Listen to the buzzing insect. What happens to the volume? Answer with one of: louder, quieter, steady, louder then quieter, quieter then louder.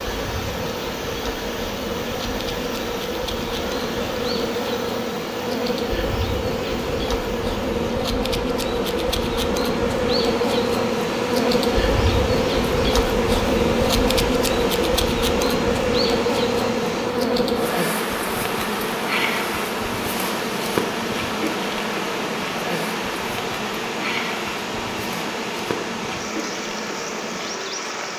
louder then quieter.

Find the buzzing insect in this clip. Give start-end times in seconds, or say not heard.
0.0-28.1.